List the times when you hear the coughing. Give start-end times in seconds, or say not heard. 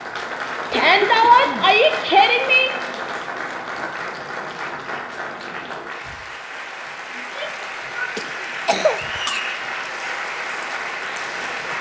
0.7-1.7, 8.2-9.4.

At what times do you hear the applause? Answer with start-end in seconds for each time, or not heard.
0.0-11.7.